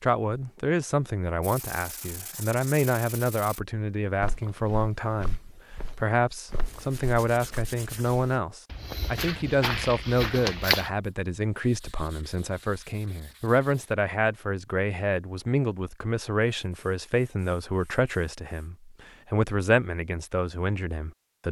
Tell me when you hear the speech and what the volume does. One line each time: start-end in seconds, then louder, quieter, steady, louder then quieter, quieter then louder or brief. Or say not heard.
0.0-21.4 steady.